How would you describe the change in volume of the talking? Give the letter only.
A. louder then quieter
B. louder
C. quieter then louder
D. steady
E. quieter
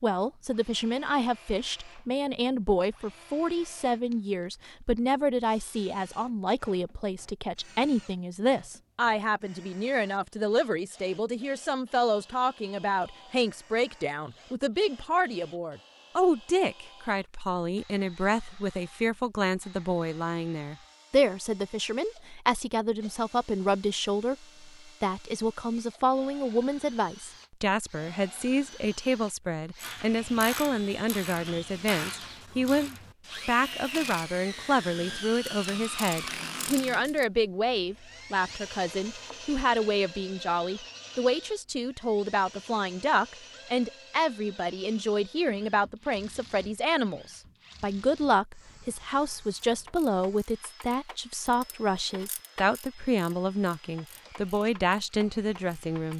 D.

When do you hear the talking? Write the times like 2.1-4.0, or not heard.
0.0-56.1.